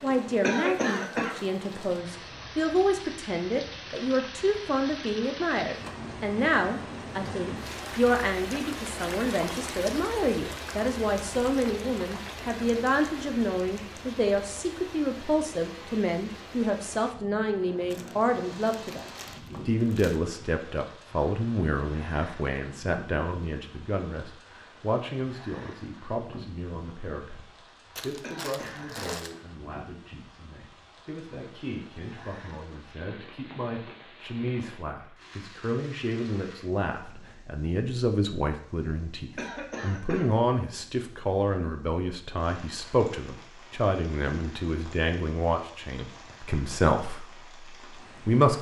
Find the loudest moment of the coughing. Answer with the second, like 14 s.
1 s.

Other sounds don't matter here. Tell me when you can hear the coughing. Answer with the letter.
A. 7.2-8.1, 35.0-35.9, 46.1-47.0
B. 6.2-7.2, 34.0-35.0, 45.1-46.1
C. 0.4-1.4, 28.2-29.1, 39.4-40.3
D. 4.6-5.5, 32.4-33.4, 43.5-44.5
C.